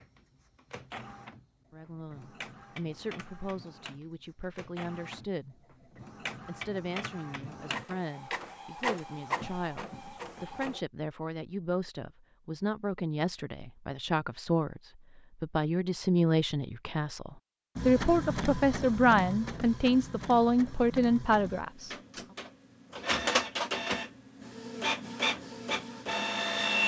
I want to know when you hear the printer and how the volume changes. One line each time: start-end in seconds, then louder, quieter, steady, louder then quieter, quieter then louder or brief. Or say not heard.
0.0-10.8 louder
17.8-26.8 quieter then louder.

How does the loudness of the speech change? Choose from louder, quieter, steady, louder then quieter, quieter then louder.
louder.